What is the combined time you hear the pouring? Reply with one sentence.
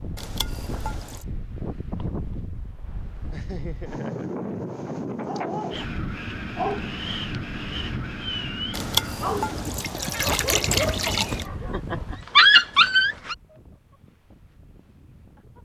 You can hear the pouring for 4 seconds altogether.